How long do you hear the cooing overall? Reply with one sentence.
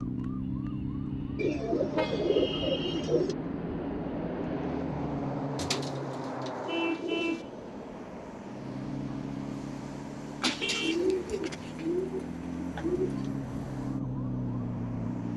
The cooing can be heard for 7 seconds in total.